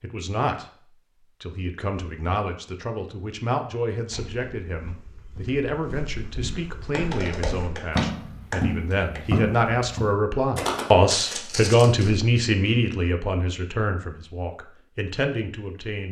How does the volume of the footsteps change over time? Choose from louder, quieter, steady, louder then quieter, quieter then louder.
louder.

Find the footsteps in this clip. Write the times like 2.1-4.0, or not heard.
4.0-12.2.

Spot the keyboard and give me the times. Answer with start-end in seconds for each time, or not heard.
6.9-9.2.